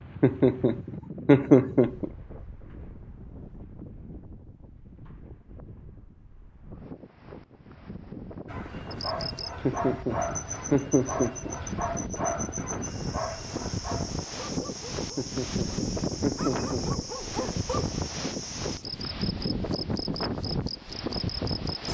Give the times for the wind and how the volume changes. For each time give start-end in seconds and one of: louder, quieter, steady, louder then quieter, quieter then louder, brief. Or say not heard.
0.0-21.8 louder.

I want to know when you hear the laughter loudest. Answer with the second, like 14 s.
1 s.